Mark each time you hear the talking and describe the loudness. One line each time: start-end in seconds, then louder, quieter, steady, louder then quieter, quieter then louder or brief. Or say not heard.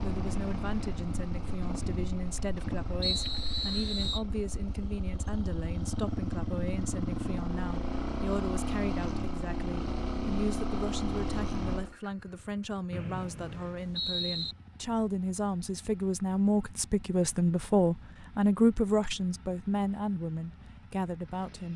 0.0-21.7 louder.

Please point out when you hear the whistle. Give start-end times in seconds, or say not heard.
3.0-4.2, 12.9-14.6.